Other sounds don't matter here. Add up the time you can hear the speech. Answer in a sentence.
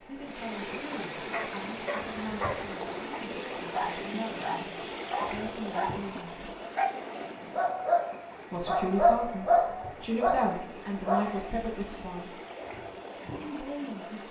You can hear the speech for 11 seconds altogether.